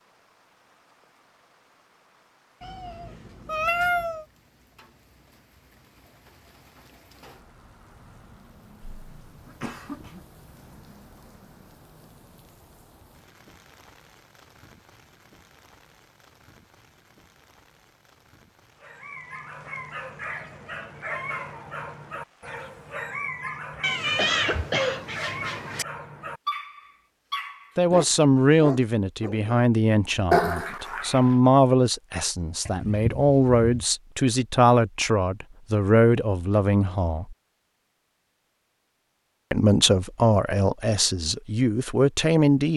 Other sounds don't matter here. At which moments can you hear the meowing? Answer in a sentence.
You can hear the meowing from 2.6 to 4.2 s, from 23.8 to 25.9 s and from 32.6 to 33.8 s.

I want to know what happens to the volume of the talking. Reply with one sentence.
The loudness of the talking stays about the same.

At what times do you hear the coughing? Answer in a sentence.
The coughing can be heard from 8.8 to 10.2 s, from 23.8 to 25.1 s and from 30.3 to 31.4 s.